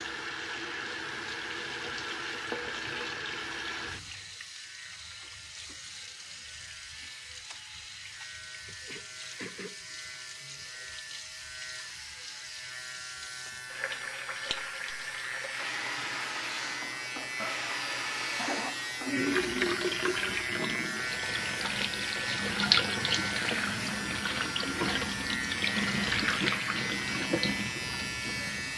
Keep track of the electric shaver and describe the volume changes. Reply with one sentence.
The volume of the electric shaver goes up.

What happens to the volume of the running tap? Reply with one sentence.
The loudness of the running tap goes down, then up.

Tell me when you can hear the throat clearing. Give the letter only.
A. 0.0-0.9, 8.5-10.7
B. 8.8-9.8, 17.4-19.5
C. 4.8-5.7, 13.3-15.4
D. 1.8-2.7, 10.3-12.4
B.